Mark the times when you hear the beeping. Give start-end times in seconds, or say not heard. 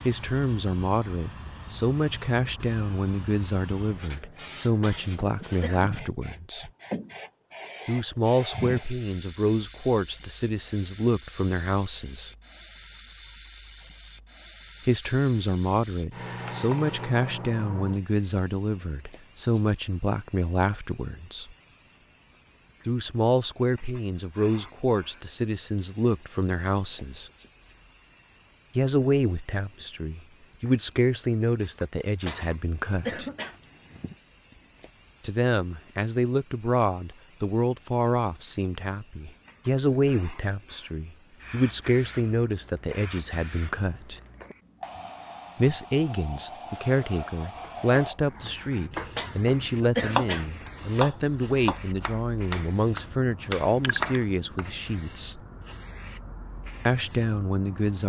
not heard.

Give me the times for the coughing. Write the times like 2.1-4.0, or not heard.
4.8-6.0, 32.2-34.1, 49.1-50.5.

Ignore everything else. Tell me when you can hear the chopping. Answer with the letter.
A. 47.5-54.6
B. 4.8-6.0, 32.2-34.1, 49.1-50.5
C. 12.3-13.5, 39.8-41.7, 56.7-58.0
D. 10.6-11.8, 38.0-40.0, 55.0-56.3
A.